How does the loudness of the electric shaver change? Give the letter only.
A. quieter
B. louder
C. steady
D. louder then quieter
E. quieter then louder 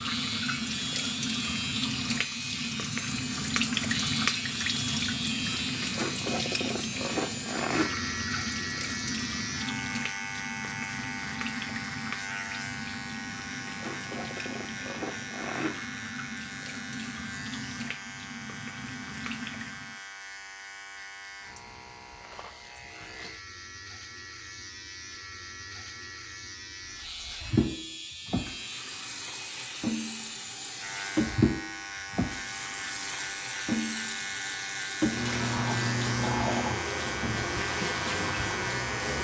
E.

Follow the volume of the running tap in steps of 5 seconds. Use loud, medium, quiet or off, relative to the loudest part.
loud, loud, medium, medium, off, loud, loud, loud.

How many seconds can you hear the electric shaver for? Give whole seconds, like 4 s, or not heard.
39 s.